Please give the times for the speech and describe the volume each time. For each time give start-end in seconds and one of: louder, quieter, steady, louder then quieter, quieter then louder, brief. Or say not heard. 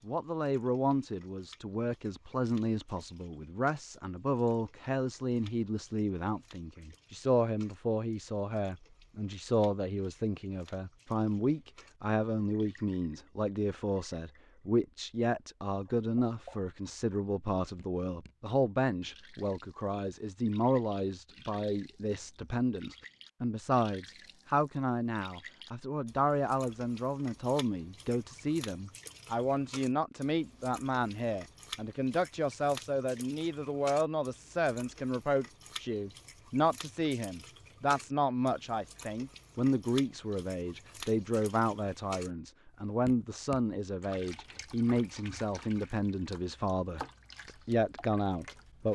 0.1-48.9 steady.